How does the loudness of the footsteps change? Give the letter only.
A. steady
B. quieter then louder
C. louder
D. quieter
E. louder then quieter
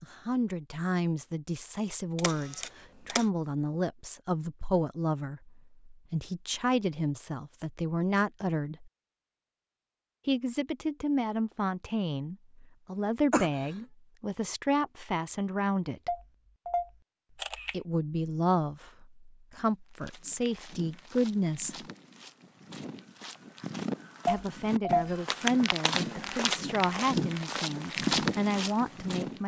C.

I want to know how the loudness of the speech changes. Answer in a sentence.
The volume of the speech stays about the same.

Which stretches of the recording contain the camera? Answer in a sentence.
You can hear the camera from 2.1 to 3.2 s, from 16.1 to 17.8 s and from 24.2 to 25.1 s.